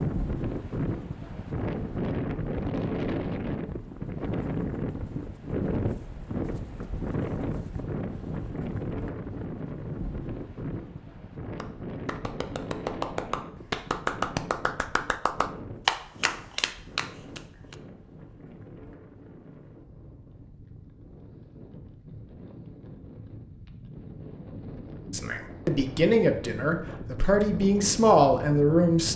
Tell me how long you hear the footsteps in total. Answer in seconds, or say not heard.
not heard.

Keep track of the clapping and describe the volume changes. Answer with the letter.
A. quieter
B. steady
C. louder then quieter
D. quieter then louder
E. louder
C.